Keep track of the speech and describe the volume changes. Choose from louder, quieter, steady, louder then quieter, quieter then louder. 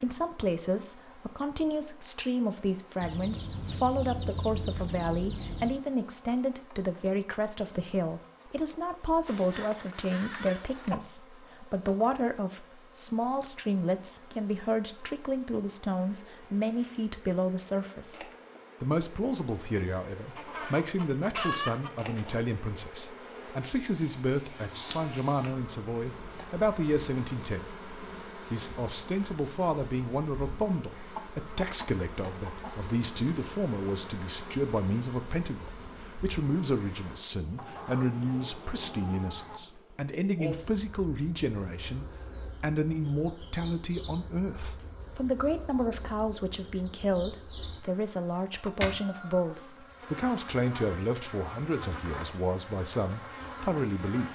steady.